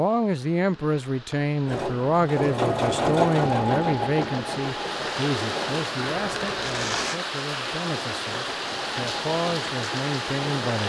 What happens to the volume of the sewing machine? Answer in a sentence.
The loudness of the sewing machine goes down.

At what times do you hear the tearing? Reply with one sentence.
You can hear the tearing from 6.5 to 7.2 s.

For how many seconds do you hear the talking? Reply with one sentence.
The talking can be heard for 11 seconds in total.